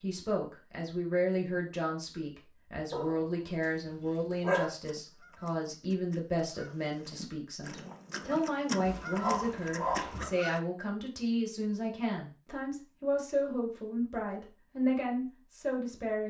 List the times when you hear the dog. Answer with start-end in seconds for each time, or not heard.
2.9-4.7, 8.8-10.3.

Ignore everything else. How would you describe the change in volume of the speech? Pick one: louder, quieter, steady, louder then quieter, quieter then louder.
steady.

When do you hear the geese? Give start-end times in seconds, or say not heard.
4.8-10.6.